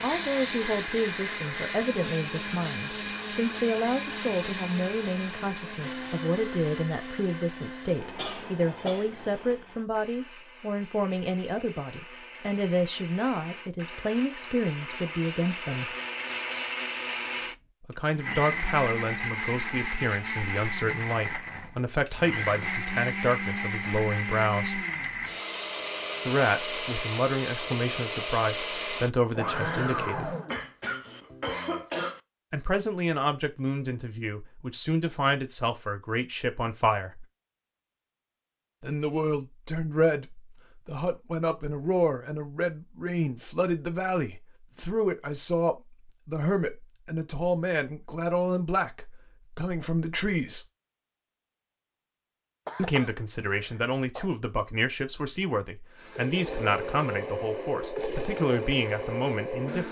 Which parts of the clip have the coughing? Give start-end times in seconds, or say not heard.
8.0-9.6, 30.4-32.2, 52.6-54.3.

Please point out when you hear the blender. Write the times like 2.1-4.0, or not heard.
0.0-30.6, 56.0-59.8.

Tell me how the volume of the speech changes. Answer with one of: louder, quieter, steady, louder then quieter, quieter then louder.
steady.